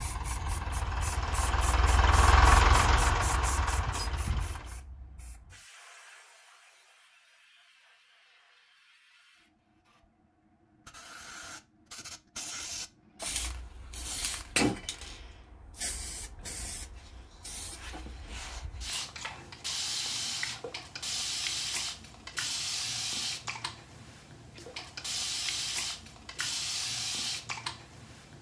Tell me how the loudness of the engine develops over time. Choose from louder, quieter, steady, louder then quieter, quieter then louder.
louder then quieter.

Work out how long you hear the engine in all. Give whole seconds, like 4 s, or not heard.
5 s.